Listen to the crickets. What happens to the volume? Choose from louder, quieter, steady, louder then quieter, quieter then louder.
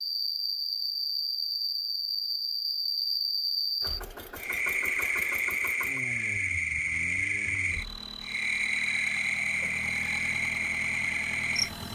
steady.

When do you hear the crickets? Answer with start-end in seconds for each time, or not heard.
0.0-11.8.